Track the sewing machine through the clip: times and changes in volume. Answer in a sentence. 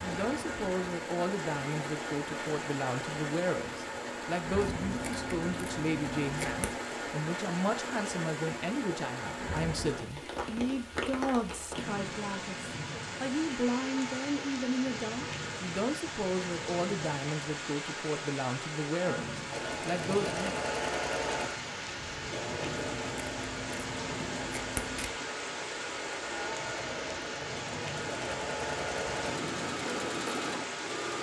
You can hear the sewing machine from 19.5 to 31.1 s, getting quieter then louder.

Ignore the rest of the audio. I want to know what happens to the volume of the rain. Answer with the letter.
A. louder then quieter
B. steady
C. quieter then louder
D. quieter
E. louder
B.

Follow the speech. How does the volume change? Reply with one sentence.
The loudness of the speech stays about the same.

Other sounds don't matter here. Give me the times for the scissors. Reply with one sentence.
The scissors can be heard from 4.7 to 6.7 s and from 22.7 to 25.1 s.